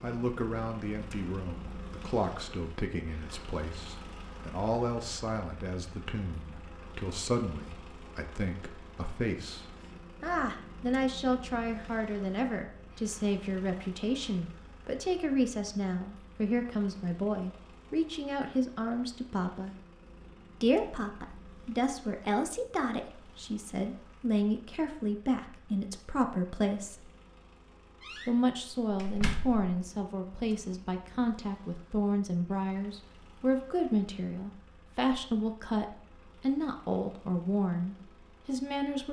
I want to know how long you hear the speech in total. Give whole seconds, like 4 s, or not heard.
37 s.